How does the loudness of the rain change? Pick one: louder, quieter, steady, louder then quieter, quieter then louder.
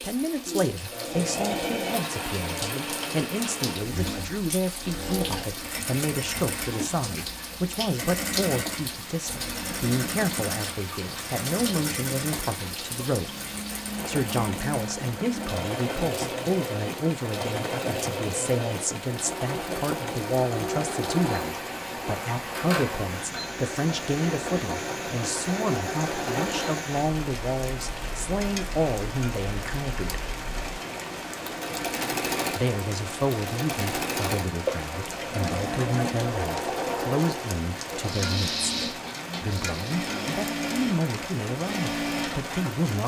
steady.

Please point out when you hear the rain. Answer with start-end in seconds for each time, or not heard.
0.0-43.0.